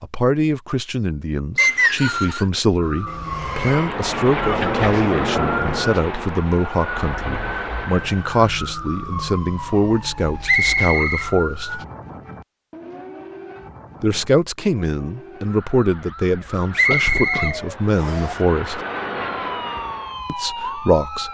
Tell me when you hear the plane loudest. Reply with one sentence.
The volume of the plane peaks at 5 seconds.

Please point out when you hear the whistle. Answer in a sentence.
The whistle can be heard from 1.6 to 2.5 s, from 10.4 to 11.8 s and from 16.8 to 18.3 s.